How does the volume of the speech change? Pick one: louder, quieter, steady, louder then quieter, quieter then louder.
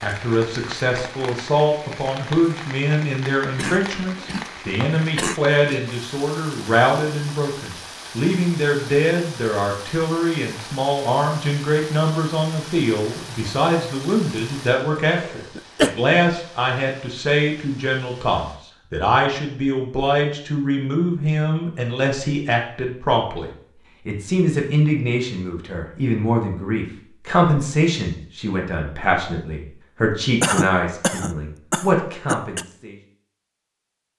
steady.